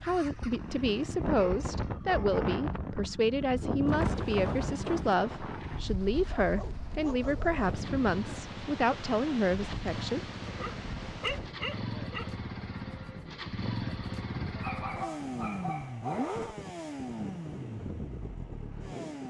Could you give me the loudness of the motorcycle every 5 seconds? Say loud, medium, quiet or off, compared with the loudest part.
medium, medium, loud, loud.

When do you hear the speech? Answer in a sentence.
The speech can be heard from 0.0 to 10.2 s.